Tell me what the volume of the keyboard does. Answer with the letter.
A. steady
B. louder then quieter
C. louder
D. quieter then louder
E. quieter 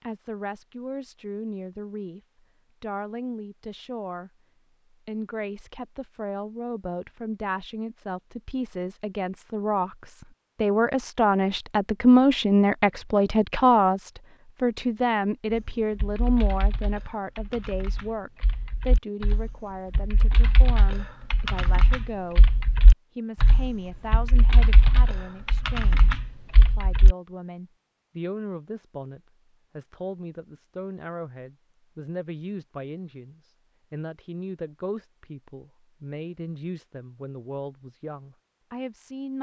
C.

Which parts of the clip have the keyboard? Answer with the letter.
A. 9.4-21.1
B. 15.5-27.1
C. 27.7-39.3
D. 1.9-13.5
B.